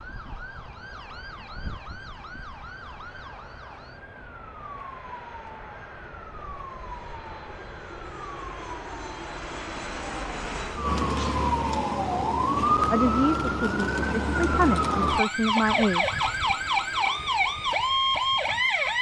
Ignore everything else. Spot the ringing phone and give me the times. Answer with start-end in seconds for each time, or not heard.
not heard.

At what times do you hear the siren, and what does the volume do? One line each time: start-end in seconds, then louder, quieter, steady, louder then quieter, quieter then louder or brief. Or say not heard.
0.0-18.9 louder.